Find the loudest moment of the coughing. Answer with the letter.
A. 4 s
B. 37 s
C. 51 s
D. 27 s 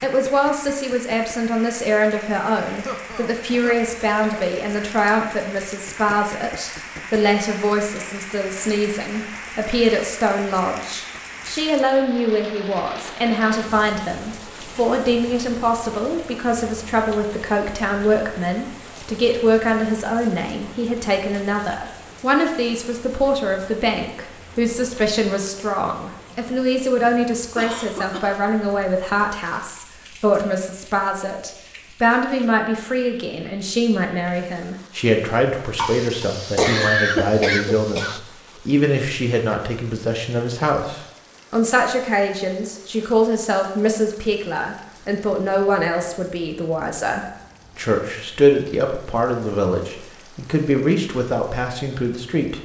B.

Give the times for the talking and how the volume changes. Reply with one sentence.
You can hear the talking from 0.0 to 52.5 s, at a steady volume.